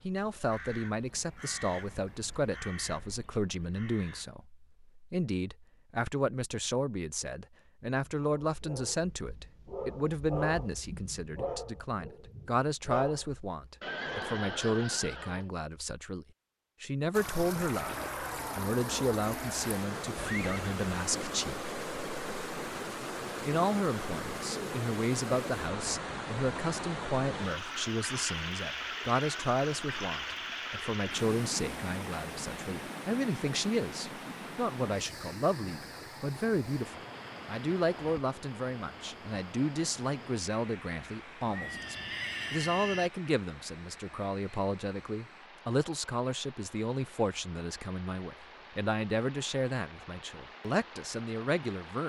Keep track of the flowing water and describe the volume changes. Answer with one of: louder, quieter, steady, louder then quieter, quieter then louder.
quieter.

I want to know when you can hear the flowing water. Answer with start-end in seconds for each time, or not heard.
17.1-52.0.